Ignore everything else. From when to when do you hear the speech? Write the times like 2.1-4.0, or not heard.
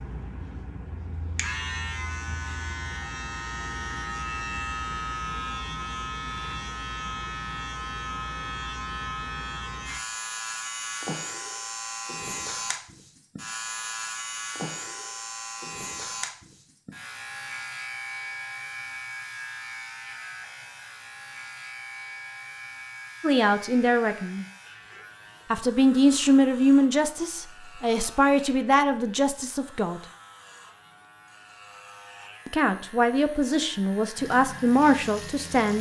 23.2-24.4, 25.5-30.0, 32.5-35.7.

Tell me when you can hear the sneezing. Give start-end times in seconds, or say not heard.
not heard.